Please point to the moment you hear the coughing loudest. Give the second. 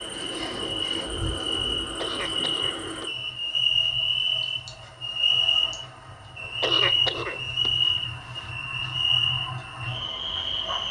7 s.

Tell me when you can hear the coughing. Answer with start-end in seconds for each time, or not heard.
1.9-3.1, 6.6-8.5.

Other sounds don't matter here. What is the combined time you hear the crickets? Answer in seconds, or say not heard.
11 s.